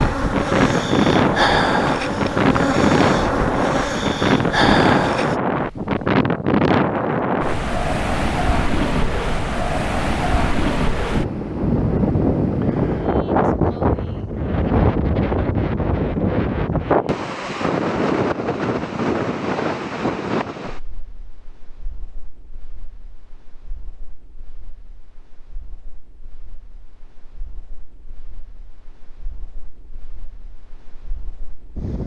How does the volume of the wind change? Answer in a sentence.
The loudness of the wind goes down.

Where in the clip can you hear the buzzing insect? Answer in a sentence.
The buzzing insect can be heard from 0.0 to 5.4 s.